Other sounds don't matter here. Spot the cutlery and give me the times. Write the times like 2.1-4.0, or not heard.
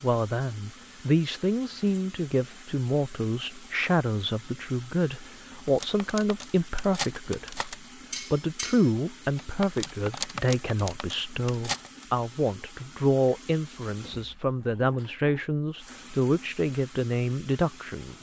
5.7-12.1.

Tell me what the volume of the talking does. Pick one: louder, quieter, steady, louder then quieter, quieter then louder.
steady.